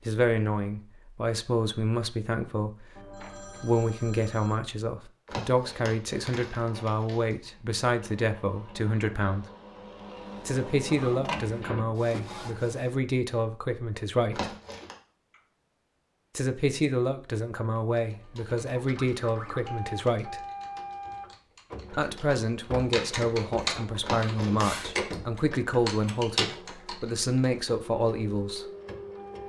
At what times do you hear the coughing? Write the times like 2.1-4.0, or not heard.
not heard.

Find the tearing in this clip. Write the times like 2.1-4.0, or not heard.
5.2-7.3, 14.3-14.9, 24.0-24.9.